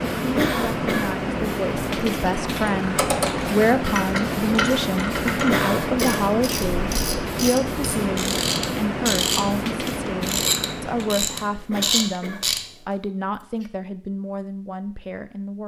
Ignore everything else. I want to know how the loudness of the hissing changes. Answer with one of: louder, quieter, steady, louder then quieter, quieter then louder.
steady.